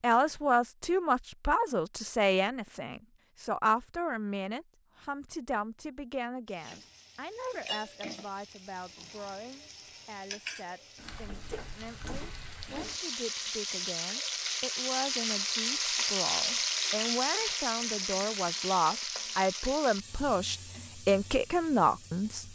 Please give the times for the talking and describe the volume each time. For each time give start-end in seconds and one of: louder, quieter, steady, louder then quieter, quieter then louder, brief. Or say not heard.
0.0-22.4 quieter then louder.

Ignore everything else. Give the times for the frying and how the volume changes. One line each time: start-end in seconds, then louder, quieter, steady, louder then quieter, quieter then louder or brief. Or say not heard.
6.5-22.4 louder then quieter.